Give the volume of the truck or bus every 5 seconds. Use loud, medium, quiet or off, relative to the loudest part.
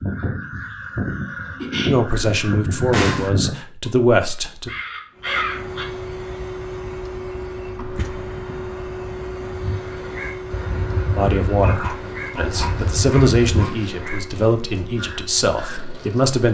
off, loud, loud, medium.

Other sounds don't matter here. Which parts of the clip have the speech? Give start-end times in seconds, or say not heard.
1.9-4.7, 11.2-16.4.